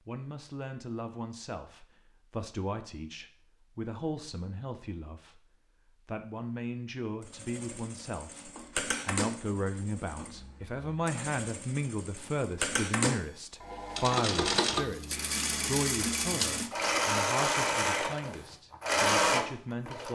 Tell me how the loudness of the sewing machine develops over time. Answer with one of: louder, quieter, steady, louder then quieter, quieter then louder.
quieter then louder.